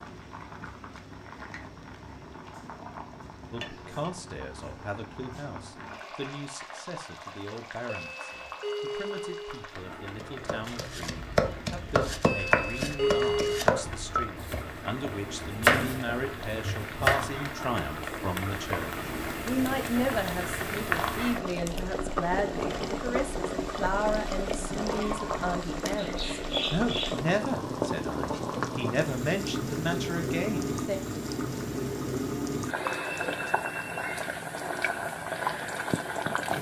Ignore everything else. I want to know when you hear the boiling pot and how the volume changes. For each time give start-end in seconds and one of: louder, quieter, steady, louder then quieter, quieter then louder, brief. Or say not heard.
0.0-36.5 louder.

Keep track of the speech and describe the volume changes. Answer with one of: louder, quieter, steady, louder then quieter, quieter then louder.
louder.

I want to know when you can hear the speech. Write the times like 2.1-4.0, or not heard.
3.5-31.0.